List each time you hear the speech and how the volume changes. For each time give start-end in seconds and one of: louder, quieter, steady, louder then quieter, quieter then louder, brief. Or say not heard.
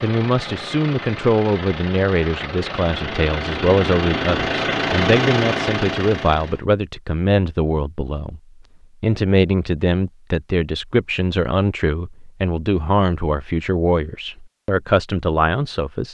0.0-8.4 steady
9.0-16.1 steady.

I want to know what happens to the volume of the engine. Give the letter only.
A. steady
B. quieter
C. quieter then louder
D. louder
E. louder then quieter
D.